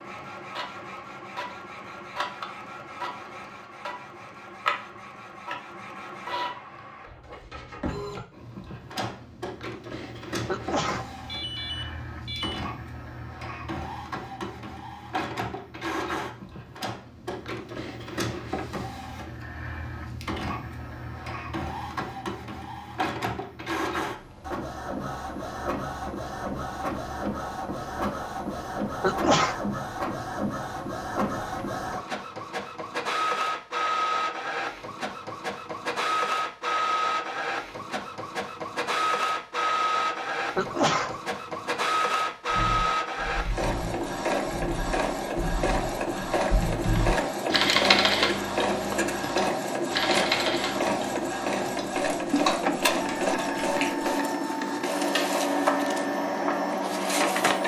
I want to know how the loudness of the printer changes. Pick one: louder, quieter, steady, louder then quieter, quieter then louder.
louder.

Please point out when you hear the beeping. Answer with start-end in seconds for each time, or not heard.
11.2-12.7.